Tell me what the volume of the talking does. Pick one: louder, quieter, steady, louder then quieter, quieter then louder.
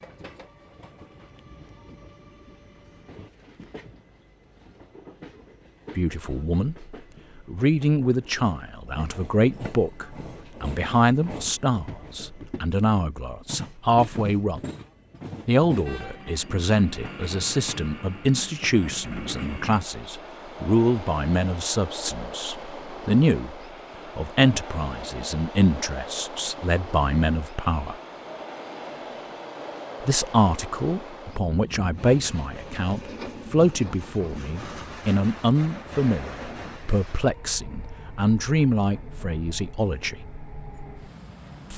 steady.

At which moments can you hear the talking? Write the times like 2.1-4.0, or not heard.
6.0-14.6, 15.4-23.6, 24.1-27.9, 30.0-40.2.